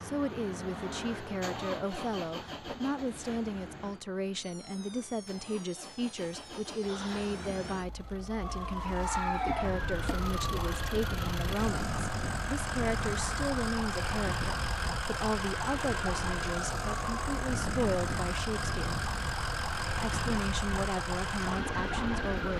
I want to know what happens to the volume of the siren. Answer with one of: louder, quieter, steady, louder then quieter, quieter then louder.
louder.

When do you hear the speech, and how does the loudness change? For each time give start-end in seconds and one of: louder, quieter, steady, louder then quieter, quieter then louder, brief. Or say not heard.
0.0-19.1 steady
20.0-22.5 brief.